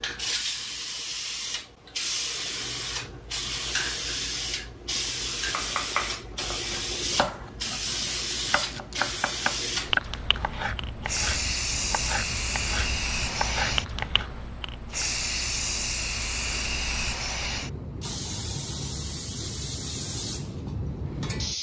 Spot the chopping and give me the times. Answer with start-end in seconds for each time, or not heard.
5.5-14.3.